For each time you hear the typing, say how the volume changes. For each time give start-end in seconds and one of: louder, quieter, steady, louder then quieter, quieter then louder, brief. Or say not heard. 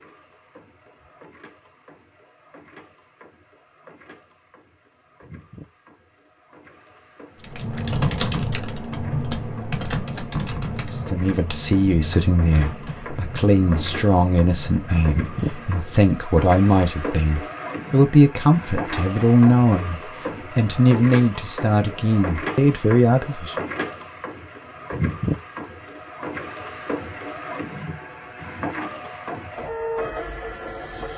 7.4-15.9 quieter.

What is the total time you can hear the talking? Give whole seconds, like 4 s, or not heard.
13 s.